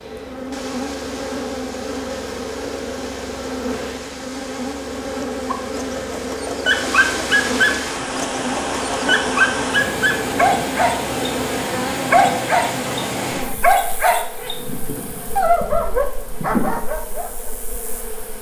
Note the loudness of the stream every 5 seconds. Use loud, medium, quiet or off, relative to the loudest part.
medium, loud, loud, quiet.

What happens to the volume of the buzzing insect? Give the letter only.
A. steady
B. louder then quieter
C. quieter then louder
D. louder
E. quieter
A.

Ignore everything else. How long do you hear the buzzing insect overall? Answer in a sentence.
The buzzing insect can be heard for 18 seconds in total.